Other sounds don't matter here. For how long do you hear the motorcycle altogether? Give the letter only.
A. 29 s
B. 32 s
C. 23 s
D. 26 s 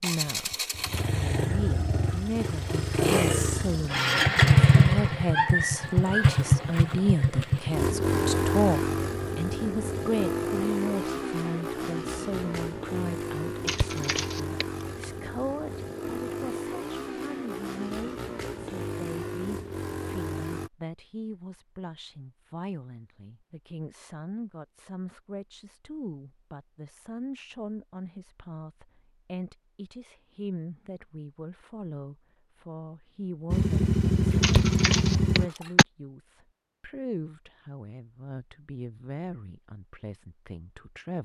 C.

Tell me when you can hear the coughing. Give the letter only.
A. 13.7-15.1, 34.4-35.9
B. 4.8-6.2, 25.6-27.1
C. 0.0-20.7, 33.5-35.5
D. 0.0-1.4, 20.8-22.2
A.